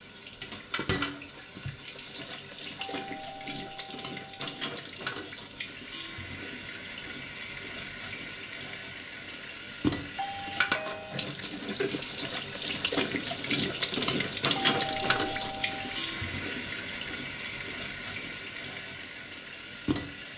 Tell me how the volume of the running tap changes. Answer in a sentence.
The loudness of the running tap goes up, then down.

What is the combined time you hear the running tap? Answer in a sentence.
You can hear the running tap for 20 seconds altogether.